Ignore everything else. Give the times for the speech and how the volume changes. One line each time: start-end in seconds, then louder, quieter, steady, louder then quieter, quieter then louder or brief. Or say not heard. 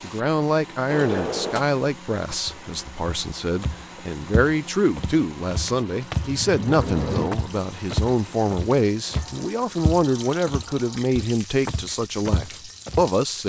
0.0-13.4 steady.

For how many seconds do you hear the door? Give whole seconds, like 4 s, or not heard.
4 s.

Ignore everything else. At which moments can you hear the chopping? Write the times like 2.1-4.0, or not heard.
not heard.